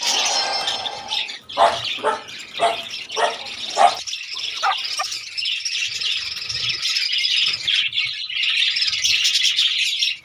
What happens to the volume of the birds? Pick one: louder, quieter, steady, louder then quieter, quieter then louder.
louder.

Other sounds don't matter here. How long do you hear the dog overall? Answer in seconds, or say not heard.
5 s.